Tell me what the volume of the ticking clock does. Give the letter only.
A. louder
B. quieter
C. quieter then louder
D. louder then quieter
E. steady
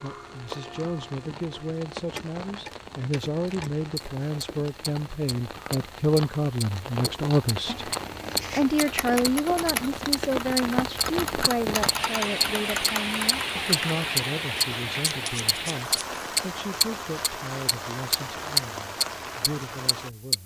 A.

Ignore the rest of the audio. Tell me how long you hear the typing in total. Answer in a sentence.
You can hear the typing for 5 seconds altogether.